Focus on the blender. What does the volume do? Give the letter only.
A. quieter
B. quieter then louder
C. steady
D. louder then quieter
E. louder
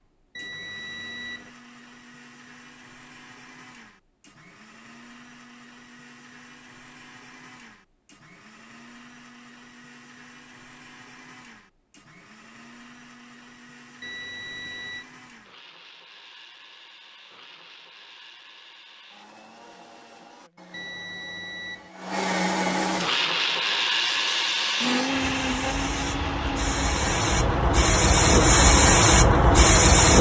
E.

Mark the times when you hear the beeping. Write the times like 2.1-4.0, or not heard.
0.3-1.5, 14.0-15.1, 20.7-21.9.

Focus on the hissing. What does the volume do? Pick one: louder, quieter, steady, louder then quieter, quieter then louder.
louder.